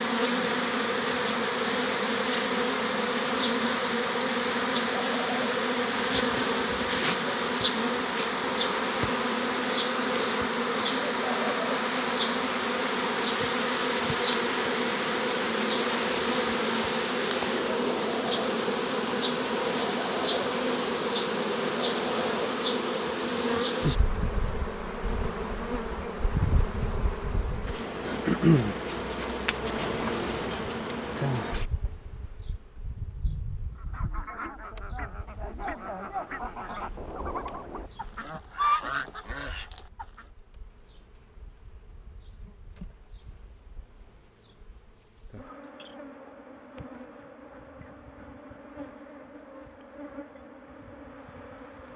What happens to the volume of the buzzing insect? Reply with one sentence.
The volume of the buzzing insect goes down.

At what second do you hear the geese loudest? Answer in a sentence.
The volume of the geese peaks at 39 seconds.